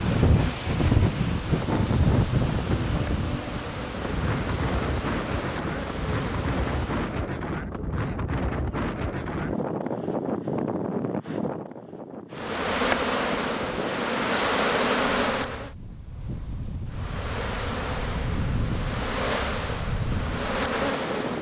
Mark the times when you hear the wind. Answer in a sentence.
You can hear the wind from 0.0 to 21.3 s.